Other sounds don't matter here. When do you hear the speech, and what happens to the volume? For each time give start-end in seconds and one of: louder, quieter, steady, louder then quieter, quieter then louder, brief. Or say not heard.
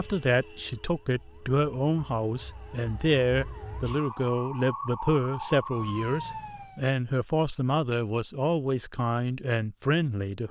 0.0-10.4 steady.